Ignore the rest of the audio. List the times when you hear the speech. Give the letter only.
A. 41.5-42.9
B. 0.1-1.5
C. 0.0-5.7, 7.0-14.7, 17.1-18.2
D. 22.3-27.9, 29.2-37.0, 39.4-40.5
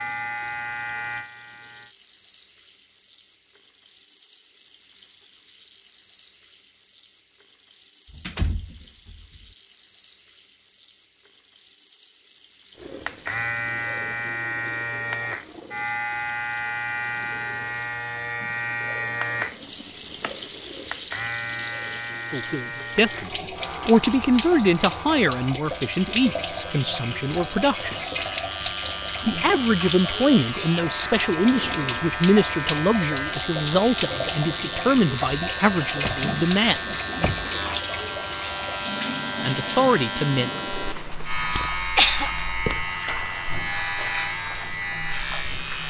D.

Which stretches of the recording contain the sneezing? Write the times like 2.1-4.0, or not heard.
41.5-42.9.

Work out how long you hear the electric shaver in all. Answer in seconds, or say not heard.
35 s.